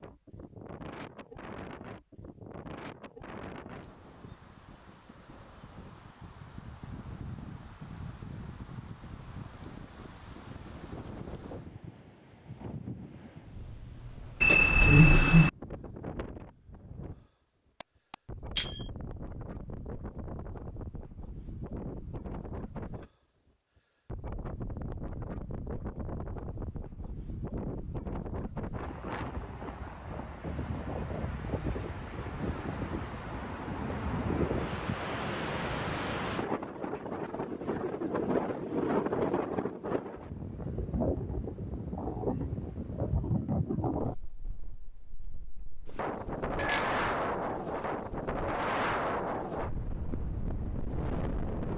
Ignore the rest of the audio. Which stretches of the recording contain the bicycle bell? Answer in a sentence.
You can hear the bicycle bell from 14.4 to 15.5 s, from 17.8 to 18.9 s and from 46.5 to 47.1 s.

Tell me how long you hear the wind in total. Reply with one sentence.
The wind can be heard for 50 seconds in total.